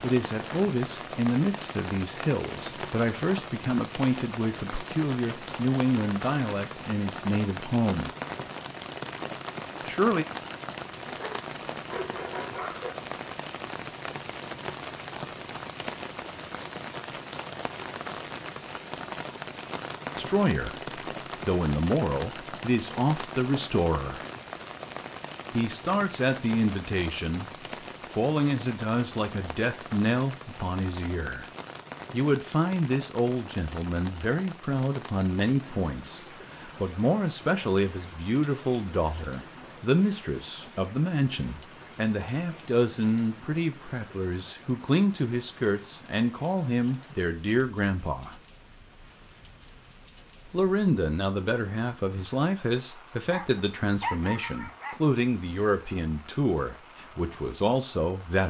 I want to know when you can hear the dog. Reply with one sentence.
You can hear the dog from 11.2 to 12.9 s and from 53.3 to 55.0 s.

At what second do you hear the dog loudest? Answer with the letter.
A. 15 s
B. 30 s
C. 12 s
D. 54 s
D.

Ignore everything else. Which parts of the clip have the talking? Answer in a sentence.
You can hear the talking from 0.0 to 8.1 s, from 9.8 to 10.2 s, from 20.1 to 24.2 s, from 25.5 to 31.4 s, from 32.1 to 48.4 s and from 50.5 to 58.4 s.